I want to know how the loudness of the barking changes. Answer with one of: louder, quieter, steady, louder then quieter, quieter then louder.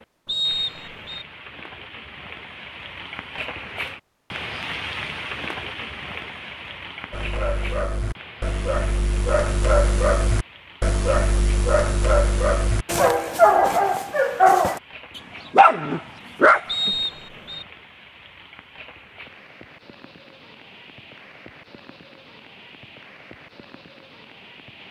louder.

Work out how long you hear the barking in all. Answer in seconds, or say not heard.
10 s.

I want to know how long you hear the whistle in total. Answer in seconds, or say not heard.
2 s.